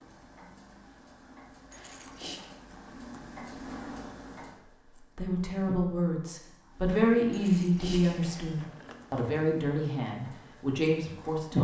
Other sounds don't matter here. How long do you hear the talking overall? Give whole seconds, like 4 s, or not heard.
6 s.